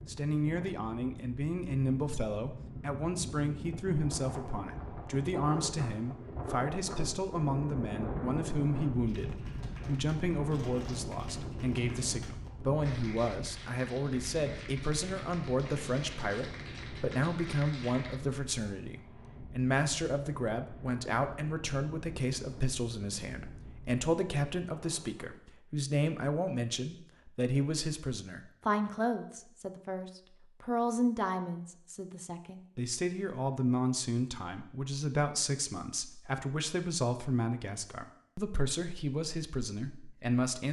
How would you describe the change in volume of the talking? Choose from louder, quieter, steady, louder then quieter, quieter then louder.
steady.